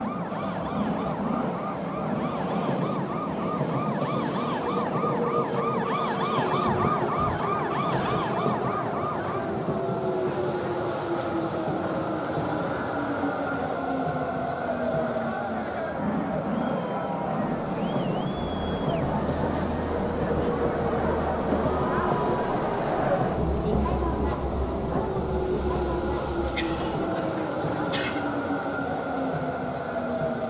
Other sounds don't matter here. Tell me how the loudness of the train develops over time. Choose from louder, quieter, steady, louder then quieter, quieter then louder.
steady.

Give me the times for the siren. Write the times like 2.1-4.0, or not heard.
0.0-9.4.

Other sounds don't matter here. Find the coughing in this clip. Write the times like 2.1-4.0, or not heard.
6.6-8.3, 26.6-28.3.